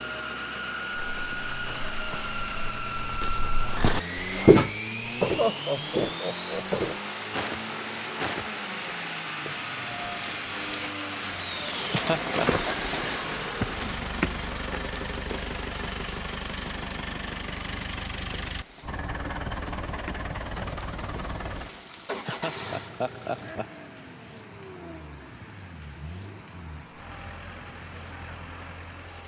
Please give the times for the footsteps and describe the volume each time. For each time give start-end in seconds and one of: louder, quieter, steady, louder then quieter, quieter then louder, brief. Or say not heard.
0.9-8.5 louder then quieter.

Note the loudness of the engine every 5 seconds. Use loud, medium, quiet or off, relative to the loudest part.
loud, loud, loud, loud, medium, quiet.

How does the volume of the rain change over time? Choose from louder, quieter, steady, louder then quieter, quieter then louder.
quieter.